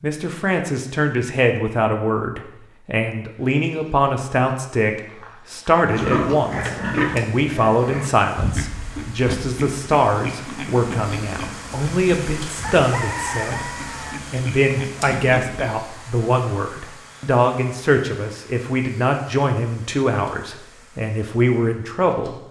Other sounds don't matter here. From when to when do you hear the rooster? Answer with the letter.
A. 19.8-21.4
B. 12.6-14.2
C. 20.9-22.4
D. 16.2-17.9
B.